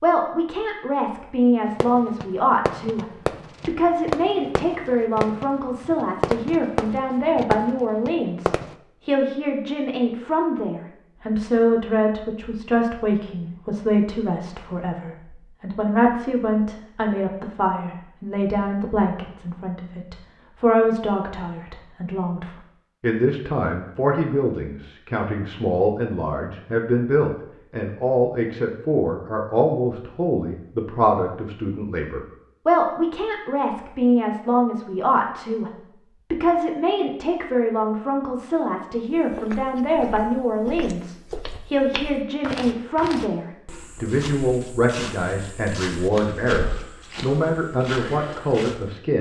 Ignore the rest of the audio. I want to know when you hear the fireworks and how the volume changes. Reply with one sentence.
You can hear the fireworks from 1.6 to 8.8 s, at a steady volume.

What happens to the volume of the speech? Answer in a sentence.
The volume of the speech stays about the same.